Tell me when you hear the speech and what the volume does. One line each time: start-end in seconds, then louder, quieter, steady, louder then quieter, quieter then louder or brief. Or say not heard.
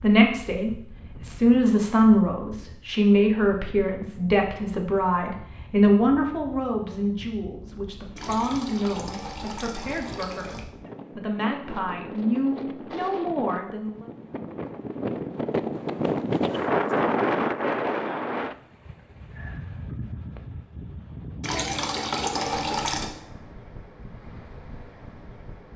0.0-14.1 quieter.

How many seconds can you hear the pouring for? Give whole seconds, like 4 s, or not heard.
4 s.